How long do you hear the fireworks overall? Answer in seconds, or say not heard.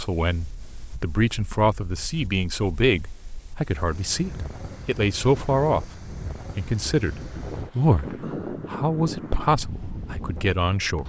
not heard.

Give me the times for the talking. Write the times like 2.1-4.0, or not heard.
0.0-11.0.